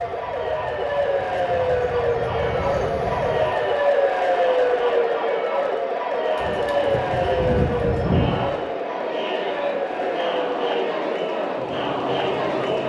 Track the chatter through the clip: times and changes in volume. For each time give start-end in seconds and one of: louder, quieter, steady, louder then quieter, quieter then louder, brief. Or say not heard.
0.0-12.8 louder.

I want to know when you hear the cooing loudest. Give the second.
8 s.